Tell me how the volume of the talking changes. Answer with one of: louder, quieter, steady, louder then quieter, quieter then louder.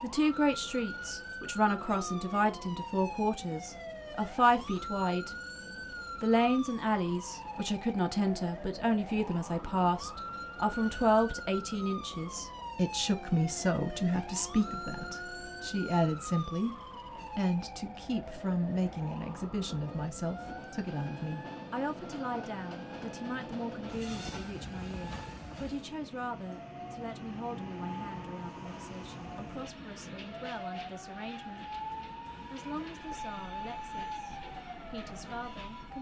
quieter.